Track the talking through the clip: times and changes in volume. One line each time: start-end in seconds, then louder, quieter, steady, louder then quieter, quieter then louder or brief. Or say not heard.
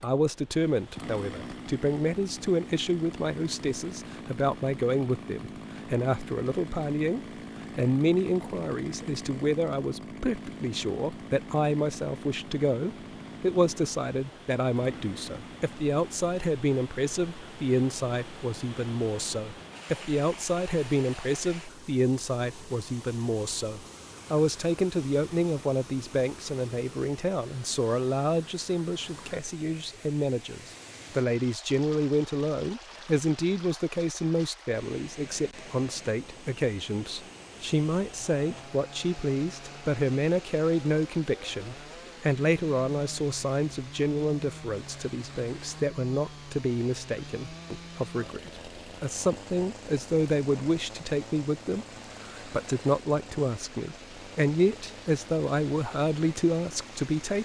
0.0-57.4 steady.